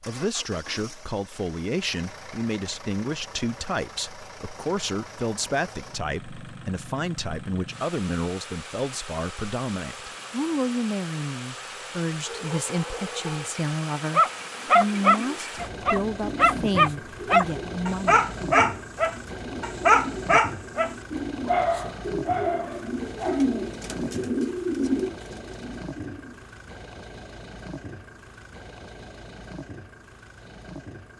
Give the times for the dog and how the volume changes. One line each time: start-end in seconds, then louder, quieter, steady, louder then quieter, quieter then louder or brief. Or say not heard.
12.2-23.5 louder then quieter.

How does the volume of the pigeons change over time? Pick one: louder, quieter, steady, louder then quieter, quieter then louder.
louder.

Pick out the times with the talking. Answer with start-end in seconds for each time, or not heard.
0.0-18.2.